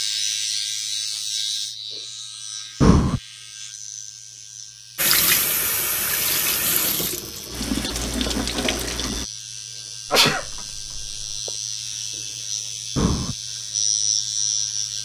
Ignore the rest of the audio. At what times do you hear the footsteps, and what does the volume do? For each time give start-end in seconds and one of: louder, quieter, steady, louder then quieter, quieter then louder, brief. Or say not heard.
not heard.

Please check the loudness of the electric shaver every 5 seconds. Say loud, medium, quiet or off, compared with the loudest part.
loud, medium, loud.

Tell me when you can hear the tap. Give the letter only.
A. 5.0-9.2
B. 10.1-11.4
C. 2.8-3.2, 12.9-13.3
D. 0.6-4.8
A.